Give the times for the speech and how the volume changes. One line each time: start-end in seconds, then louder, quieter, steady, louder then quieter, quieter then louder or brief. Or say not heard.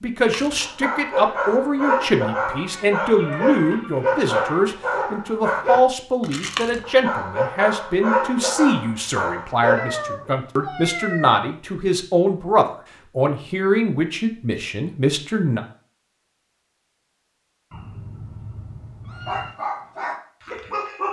0.0-15.6 steady.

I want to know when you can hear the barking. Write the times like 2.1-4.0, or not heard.
0.3-10.3, 19.2-21.0.